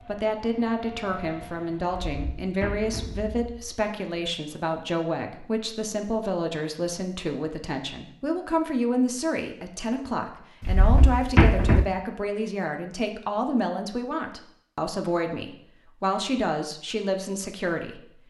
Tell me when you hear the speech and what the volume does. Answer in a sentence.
The speech can be heard from 0.0 to 18.1 s, at a steady volume.